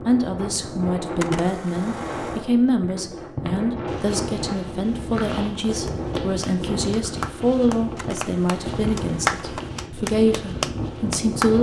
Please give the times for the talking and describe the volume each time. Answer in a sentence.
The talking can be heard from 0.1 to 11.5 s, at a steady volume.